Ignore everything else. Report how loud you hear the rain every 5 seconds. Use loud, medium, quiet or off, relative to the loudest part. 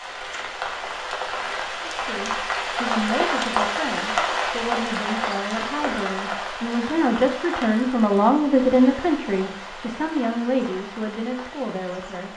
loud, medium, quiet.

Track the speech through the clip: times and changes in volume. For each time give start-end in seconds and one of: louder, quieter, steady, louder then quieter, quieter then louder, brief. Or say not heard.
1.8-12.3 louder then quieter.